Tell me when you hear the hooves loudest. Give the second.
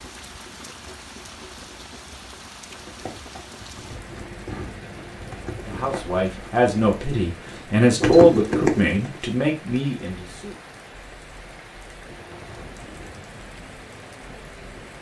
8 s.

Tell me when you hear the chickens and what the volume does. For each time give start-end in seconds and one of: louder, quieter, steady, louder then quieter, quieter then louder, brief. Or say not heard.
not heard.